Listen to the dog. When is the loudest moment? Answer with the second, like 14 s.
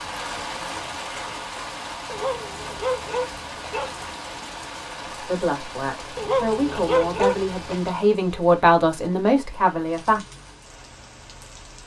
7 s.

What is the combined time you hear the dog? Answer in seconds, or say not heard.
4 s.